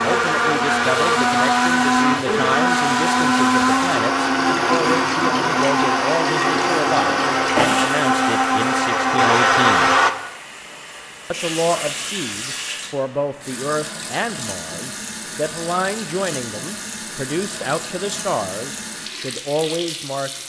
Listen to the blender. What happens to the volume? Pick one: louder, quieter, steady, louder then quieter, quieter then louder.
steady.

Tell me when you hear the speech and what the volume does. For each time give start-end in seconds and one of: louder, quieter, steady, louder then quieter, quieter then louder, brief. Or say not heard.
0.0-9.9 steady
11.3-20.4 steady.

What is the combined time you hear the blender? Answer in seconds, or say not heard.
10 s.